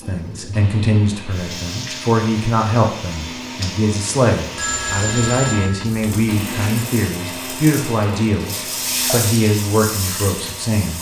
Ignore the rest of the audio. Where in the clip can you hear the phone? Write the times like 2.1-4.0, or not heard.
4.5-6.8.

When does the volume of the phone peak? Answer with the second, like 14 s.
5 s.